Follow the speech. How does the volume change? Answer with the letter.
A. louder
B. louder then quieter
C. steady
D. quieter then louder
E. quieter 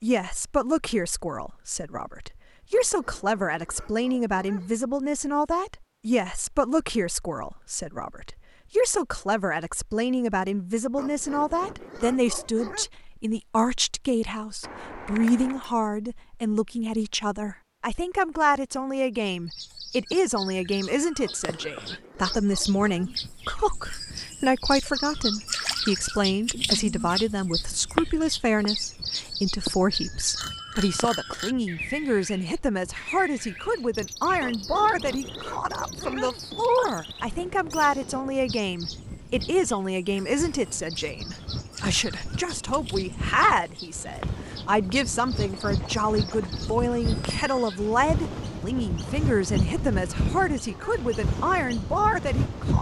C.